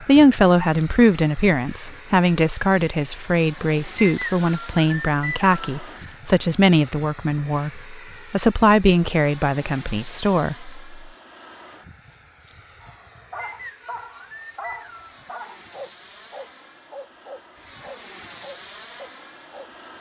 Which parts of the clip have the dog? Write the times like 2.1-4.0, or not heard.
12.8-19.7.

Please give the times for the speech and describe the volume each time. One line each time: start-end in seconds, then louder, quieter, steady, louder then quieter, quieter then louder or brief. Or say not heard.
0.1-10.8 steady.